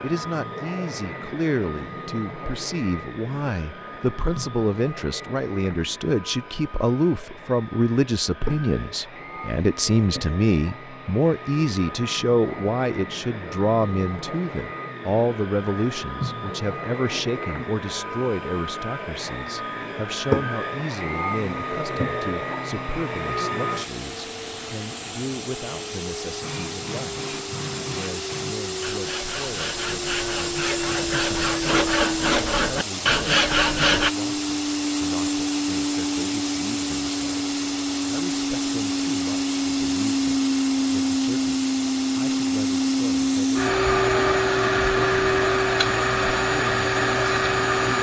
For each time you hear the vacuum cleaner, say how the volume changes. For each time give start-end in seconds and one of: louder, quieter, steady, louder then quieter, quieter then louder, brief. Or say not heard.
0.0-47.9 louder.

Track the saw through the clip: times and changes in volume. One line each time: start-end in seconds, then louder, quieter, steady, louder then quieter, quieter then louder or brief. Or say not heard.
26.4-34.1 louder.